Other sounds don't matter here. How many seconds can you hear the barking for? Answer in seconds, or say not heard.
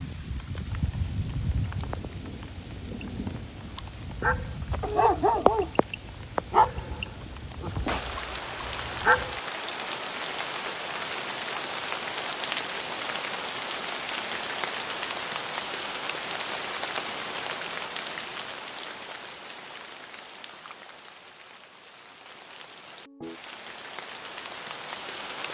5 s.